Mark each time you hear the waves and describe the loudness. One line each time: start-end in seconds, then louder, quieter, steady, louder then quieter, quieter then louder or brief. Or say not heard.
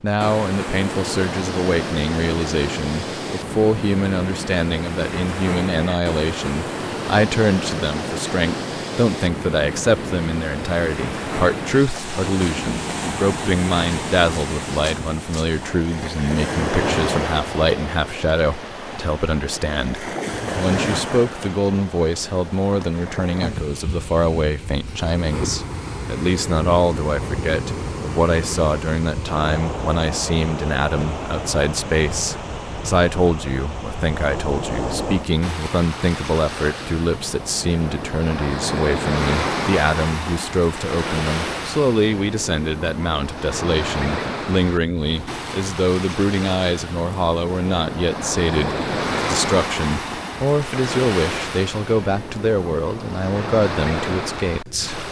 0.1-55.0 steady.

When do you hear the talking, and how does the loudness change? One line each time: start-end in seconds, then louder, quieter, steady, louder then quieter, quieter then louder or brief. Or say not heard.
0.0-55.0 steady.